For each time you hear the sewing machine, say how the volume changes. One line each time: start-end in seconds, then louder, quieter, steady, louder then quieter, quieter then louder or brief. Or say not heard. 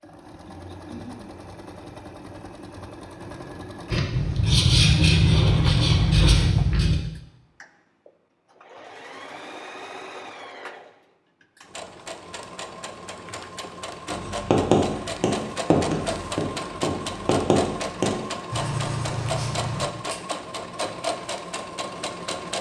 0.0-22.5 louder.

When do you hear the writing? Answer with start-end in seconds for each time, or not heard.
3.9-7.0, 14.1-19.8.